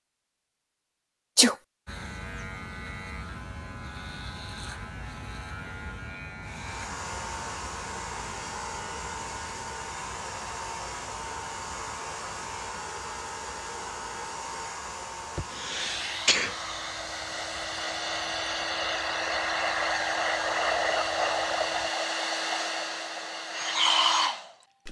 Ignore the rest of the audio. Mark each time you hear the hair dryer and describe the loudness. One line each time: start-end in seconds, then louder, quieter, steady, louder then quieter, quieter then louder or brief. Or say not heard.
6.4-24.8 louder.